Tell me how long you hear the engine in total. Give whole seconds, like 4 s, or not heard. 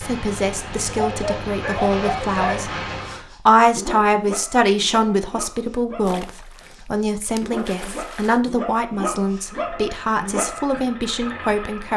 6 s.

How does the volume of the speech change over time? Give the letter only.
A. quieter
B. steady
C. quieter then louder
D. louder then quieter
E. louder
D.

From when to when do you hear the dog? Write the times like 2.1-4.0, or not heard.
0.8-10.8.